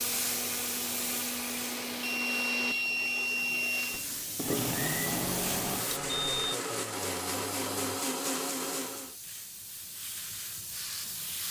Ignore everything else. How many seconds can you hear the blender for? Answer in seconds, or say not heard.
9 s.